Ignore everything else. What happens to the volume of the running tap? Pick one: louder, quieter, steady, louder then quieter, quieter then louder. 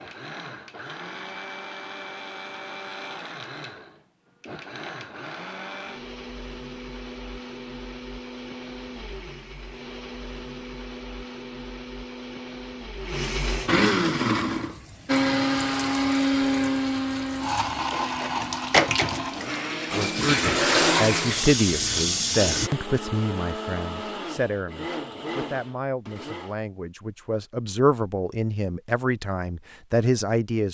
louder.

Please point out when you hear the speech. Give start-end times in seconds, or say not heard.
19.9-30.6.